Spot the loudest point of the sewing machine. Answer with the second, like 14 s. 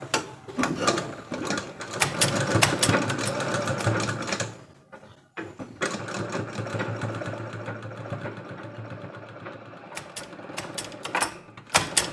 3 s.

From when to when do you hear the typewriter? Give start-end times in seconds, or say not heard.
2.0-4.0, 9.9-12.0.